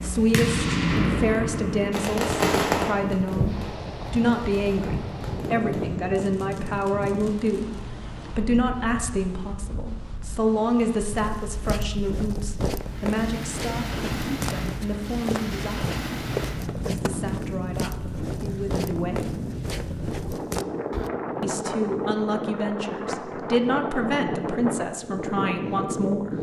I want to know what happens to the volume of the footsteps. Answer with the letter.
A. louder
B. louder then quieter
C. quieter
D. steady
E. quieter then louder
D.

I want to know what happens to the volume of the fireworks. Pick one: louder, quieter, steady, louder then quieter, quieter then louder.
quieter.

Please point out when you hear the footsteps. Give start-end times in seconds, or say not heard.
11.1-21.1.